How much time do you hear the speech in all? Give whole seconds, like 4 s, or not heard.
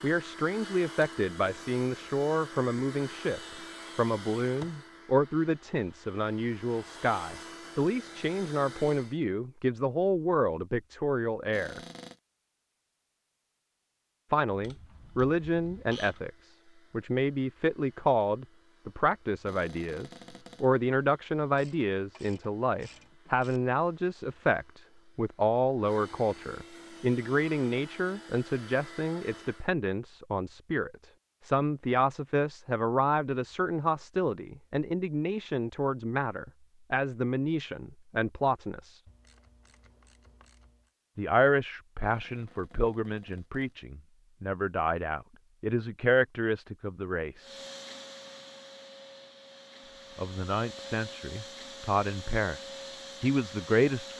47 s.